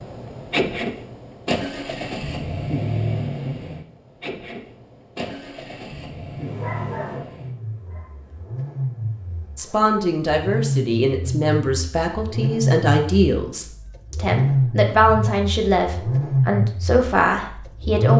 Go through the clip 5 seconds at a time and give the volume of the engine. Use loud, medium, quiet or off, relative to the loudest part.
medium, medium, loud, loud.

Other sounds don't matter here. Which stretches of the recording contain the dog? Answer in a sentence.
You can hear the dog from 6.3 to 9.9 s.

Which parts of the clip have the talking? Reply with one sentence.
The talking can be heard from 9.6 to 18.1 s.